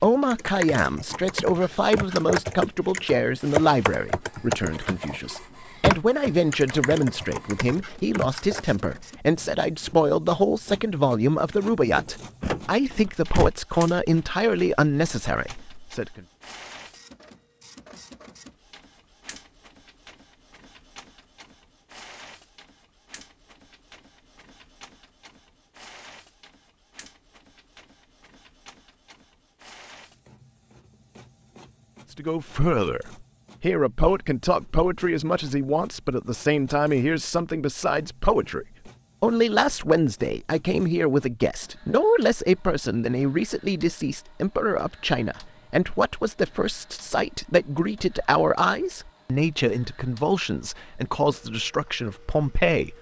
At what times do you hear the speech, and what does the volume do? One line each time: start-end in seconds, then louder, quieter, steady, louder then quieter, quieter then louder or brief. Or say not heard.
0.0-16.2 steady
32.1-52.9 steady.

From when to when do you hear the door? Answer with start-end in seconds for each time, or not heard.
11.5-13.5.